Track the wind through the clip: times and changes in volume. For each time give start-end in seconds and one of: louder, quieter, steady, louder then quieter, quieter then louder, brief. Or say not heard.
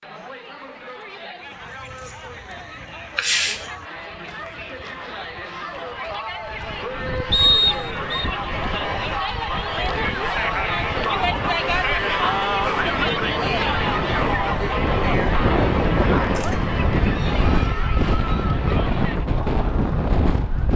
6.4-20.7 louder.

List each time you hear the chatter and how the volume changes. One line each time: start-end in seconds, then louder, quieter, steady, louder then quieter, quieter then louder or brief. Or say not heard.
0.0-20.7 louder then quieter.